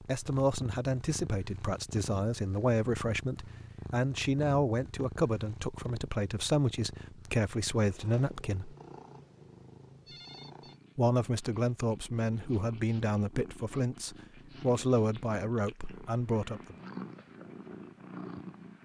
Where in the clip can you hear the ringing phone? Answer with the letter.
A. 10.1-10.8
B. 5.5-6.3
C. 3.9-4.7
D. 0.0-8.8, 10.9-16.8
A.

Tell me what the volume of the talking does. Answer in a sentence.
The volume of the talking stays about the same.